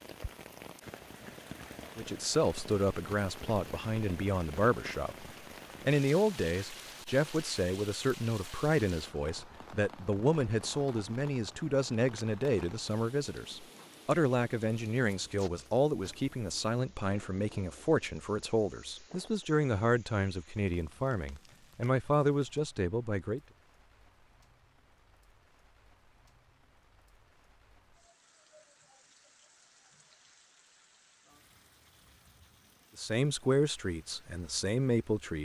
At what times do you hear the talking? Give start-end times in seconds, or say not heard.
1.9-23.4, 33.0-35.4.